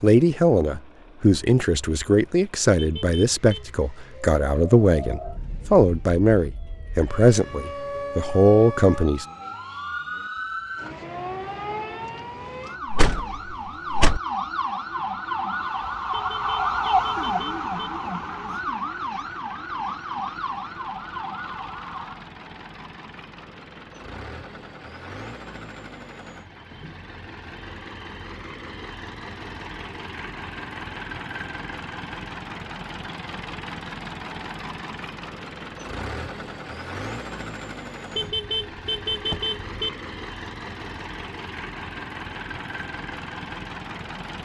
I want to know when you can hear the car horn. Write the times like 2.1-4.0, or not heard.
2.8-3.7, 16.1-17.9, 38.1-39.9.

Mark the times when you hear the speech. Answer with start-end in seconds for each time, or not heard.
0.0-9.2.